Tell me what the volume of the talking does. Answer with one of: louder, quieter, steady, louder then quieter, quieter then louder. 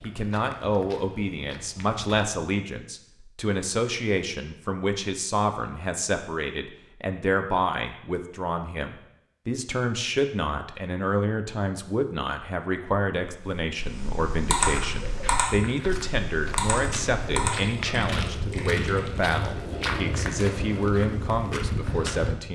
steady.